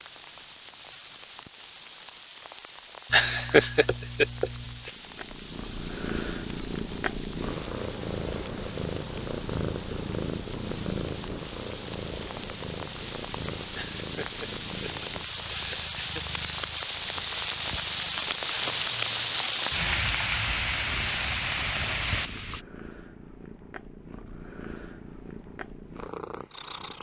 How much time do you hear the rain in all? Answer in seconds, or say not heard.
23 s.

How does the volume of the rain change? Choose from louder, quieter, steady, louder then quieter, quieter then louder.
louder.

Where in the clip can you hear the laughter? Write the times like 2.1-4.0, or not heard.
3.1-4.9, 13.8-16.2.